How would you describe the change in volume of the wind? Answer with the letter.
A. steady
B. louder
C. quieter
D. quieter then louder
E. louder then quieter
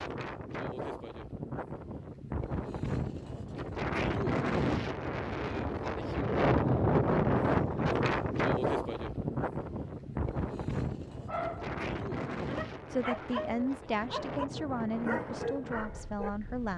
E.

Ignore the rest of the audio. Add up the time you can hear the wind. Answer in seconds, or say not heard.
17 s.